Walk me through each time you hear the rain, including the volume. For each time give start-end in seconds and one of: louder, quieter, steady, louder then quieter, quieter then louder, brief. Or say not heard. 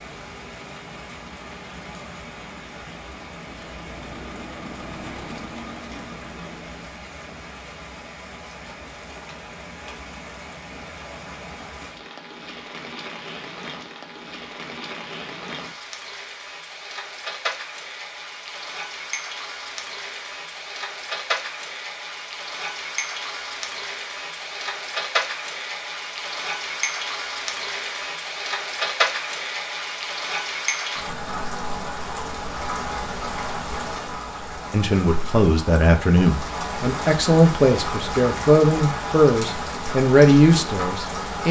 0.0-41.4 louder.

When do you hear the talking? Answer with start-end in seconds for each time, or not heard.
34.7-41.4.